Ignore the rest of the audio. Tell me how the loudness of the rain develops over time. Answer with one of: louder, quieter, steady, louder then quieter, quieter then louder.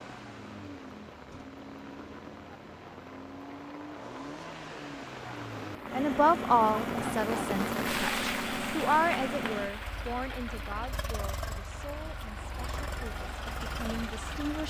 louder then quieter.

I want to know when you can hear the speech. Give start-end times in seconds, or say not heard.
5.9-14.6.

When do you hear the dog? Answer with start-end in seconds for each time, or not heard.
not heard.